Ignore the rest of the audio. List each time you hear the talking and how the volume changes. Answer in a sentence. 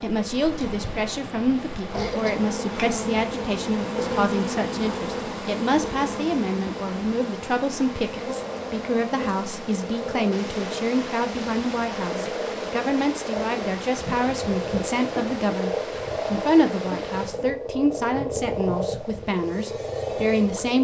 You can hear the talking from 0.0 to 20.7 s, at a steady volume.